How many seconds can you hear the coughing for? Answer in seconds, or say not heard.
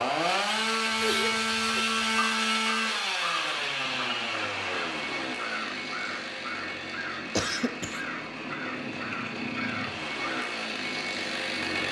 2 s.